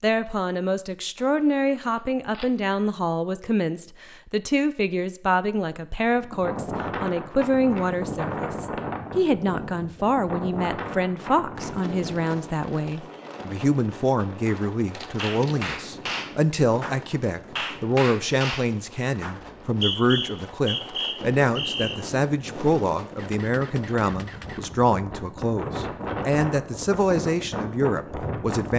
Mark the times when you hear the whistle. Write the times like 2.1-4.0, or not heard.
19.4-21.9.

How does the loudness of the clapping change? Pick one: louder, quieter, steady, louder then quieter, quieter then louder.
steady.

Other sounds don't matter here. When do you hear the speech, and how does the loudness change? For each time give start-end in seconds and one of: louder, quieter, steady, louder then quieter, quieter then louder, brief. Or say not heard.
0.0-28.7 steady.